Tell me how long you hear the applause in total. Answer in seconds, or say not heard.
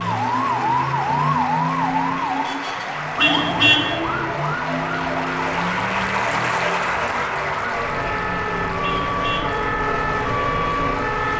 11 s.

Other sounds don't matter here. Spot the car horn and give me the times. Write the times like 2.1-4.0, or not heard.
3.1-3.9, 8.8-9.5.